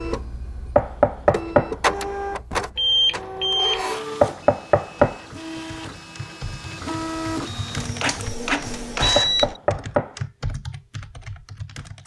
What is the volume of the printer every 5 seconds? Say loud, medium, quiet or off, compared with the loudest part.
loud, loud, off.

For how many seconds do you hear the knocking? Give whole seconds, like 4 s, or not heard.
3 s.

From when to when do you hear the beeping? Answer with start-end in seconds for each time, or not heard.
2.8-3.9, 8.2-9.6.